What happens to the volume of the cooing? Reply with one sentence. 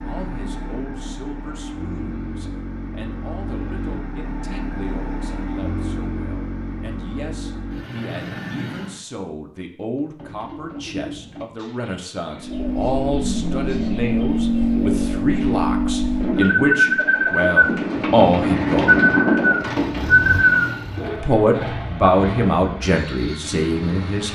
The loudness of the cooing goes down, then up.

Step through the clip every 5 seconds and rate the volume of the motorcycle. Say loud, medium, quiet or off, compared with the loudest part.
medium, medium, loud, loud, medium.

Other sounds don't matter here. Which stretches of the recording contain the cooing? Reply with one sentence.
The cooing can be heard from 10.2 to 21.1 s.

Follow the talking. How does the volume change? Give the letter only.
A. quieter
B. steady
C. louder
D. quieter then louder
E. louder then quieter
C.